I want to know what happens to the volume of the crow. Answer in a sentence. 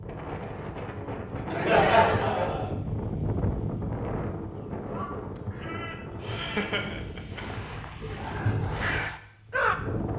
The loudness of the crow goes up.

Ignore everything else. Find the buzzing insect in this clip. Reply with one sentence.
The buzzing insect can't be heard in this clip.